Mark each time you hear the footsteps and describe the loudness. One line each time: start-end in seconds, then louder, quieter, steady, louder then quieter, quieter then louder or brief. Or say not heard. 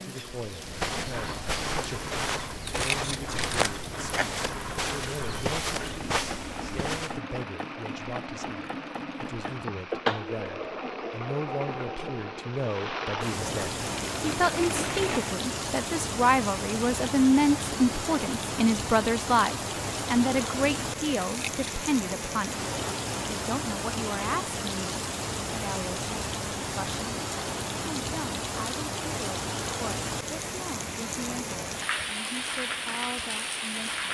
0.5-7.2 steady.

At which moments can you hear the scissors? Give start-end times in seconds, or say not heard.
2.6-4.2, 21.2-21.7.